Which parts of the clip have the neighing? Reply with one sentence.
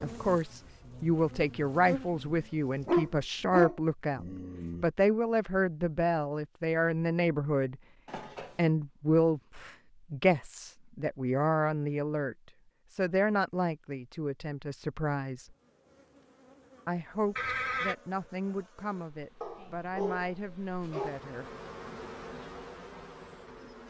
The neighing can be heard from 8.1 to 8.7 s and from 17.4 to 17.9 s.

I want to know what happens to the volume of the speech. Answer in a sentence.
The loudness of the speech goes down.